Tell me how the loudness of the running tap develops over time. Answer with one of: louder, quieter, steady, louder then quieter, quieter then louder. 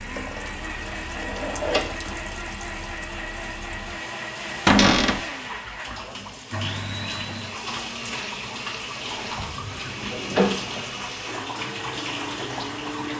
louder.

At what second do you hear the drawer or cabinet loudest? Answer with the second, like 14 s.
5 s.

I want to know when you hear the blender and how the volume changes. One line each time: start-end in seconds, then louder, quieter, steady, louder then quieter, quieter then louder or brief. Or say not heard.
0.0-13.1 steady.